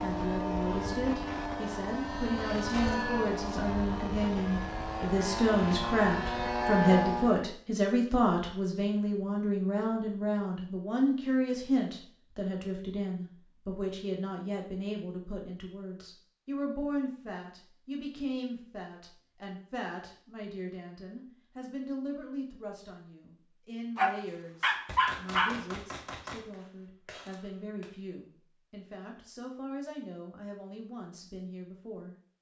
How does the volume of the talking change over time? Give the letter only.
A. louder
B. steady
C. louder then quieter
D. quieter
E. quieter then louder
D.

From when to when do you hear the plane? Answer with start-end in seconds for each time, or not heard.
0.0-7.5.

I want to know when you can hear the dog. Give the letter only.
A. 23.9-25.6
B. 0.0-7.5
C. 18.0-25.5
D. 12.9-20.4
A.